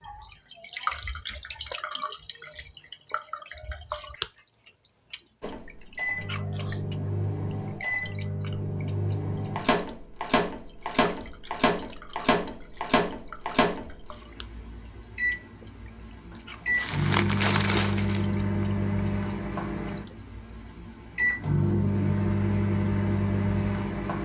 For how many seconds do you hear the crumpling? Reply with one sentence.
The crumpling can be heard for 2 seconds in total.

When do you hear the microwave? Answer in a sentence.
You can hear the microwave from 5.4 to 24.2 s.